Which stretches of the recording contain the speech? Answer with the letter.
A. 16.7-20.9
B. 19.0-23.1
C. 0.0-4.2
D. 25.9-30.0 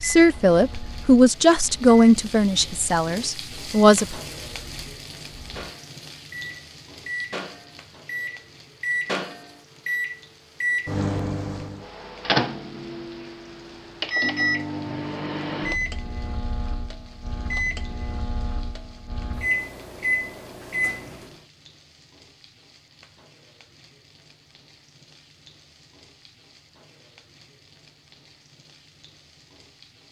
C.